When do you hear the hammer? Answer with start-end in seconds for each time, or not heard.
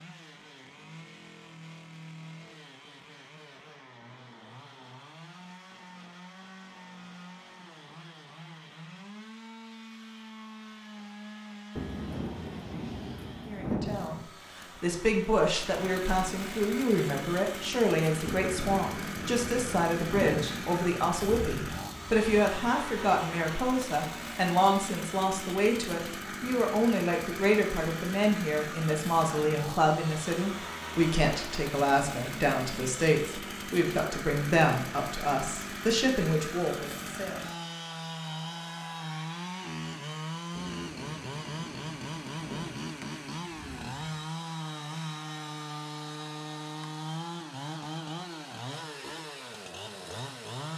not heard.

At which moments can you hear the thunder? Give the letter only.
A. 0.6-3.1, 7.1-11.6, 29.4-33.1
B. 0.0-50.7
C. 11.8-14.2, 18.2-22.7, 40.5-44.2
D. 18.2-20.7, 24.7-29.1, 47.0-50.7
C.